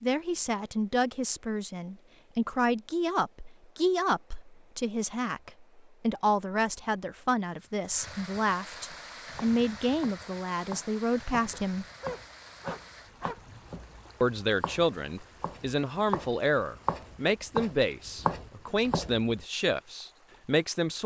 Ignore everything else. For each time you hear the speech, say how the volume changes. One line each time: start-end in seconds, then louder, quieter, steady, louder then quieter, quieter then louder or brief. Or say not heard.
0.0-11.8 steady
14.2-21.0 steady.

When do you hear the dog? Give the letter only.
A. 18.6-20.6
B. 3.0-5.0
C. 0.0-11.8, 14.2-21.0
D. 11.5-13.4
D.